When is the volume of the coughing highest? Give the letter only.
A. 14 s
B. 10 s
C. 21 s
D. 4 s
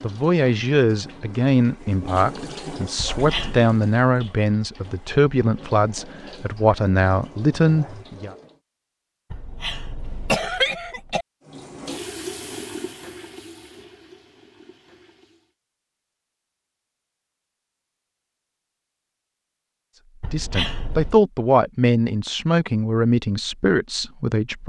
B.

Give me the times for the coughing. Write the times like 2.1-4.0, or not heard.
3.0-3.6, 9.3-11.2, 20.2-21.2.